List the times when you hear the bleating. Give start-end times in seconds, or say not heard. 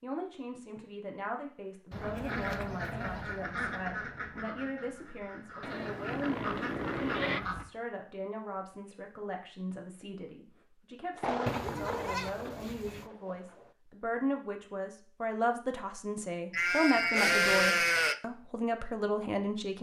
1.9-3.3, 5.6-7.4, 11.4-13.1, 16.5-18.2.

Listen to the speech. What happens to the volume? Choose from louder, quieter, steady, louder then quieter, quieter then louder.
louder.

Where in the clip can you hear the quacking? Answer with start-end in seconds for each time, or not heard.
1.9-7.7.